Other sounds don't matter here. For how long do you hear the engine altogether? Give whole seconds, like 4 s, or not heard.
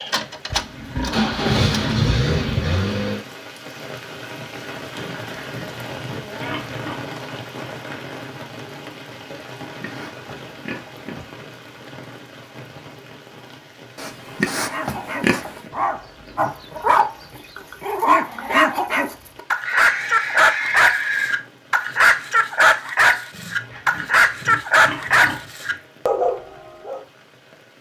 3 s.